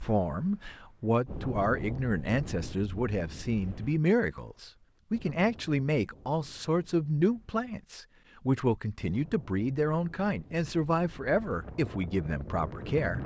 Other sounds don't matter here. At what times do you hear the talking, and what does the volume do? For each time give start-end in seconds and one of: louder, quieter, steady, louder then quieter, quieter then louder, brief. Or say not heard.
0.0-13.2 steady.